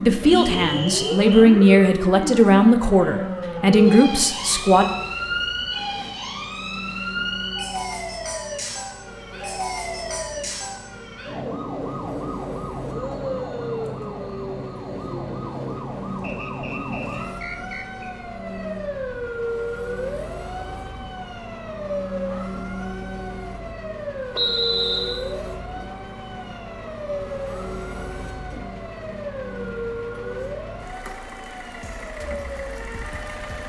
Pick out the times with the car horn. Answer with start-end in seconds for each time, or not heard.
not heard.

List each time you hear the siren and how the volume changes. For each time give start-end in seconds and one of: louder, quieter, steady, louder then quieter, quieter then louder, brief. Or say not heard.
0.0-33.6 quieter.